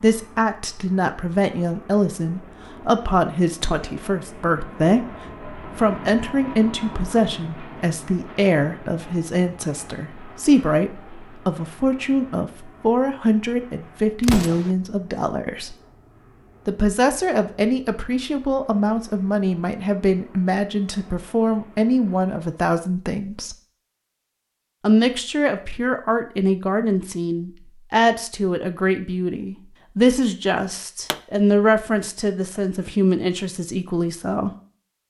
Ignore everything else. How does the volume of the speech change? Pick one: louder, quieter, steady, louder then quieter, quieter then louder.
steady.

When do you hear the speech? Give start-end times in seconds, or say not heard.
0.0-15.8, 16.6-23.6, 24.8-34.5.